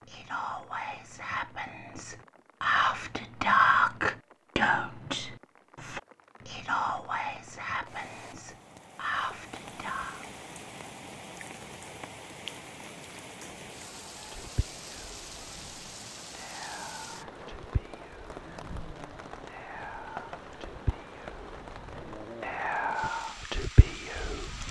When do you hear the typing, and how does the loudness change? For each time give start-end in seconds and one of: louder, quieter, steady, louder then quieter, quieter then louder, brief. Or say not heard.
not heard.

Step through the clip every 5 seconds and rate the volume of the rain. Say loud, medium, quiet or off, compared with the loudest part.
quiet, medium, loud, loud, loud.